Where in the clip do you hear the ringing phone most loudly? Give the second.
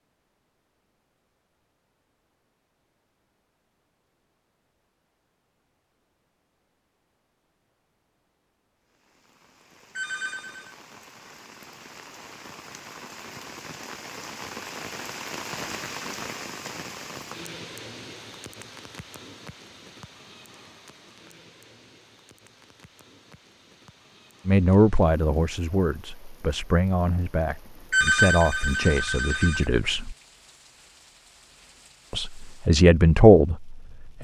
28 s.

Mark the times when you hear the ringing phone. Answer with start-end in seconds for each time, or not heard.
9.9-10.8, 27.9-29.6.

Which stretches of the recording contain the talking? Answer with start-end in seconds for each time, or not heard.
24.4-30.1, 32.1-34.1.